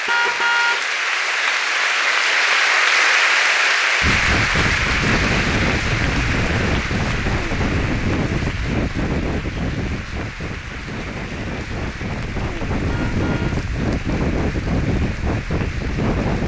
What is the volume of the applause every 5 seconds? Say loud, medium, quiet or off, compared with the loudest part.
loud, medium, quiet, quiet.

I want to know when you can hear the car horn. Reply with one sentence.
You can hear the car horn from 0.1 to 0.8 s and from 12.8 to 13.6 s.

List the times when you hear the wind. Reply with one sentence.
The wind can be heard from 4.0 to 16.4 s.